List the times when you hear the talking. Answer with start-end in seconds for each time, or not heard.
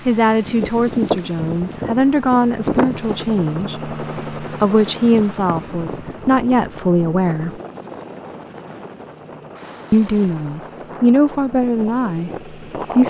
0.1-7.6, 9.9-13.0.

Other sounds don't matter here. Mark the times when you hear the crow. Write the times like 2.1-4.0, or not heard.
not heard.